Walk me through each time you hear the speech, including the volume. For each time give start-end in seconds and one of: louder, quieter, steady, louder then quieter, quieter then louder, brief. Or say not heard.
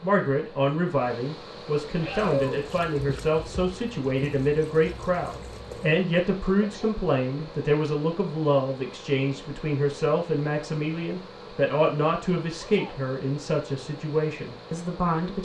0.0-15.4 steady.